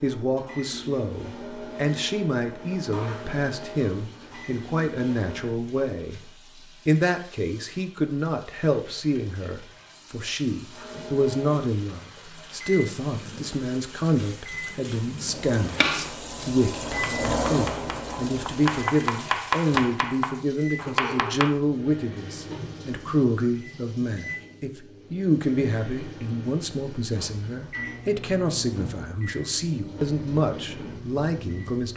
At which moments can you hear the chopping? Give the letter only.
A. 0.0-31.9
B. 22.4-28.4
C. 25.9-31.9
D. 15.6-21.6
D.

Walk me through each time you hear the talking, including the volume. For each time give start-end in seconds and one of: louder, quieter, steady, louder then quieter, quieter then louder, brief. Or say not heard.
0.0-31.9 steady.